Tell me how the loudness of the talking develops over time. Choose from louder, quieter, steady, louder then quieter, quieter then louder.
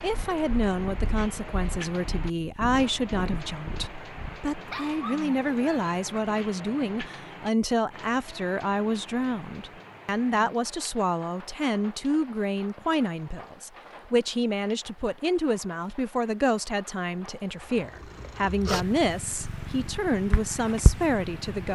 steady.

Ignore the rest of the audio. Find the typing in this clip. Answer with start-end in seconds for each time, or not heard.
not heard.